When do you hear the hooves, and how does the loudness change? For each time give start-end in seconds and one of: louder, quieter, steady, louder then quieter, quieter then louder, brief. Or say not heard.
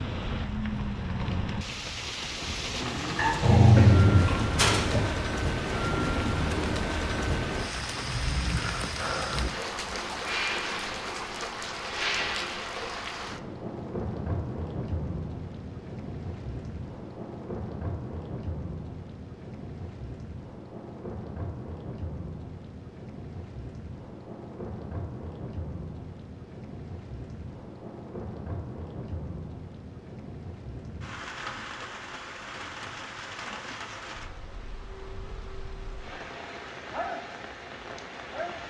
not heard.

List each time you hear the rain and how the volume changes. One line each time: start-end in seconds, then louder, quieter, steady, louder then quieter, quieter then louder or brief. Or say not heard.
0.0-38.6 quieter.